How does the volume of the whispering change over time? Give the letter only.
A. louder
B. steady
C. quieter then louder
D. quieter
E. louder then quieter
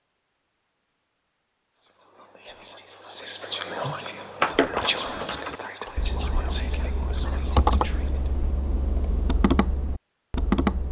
E.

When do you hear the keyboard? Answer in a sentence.
You can hear the keyboard from 4.4 to 10.8 s.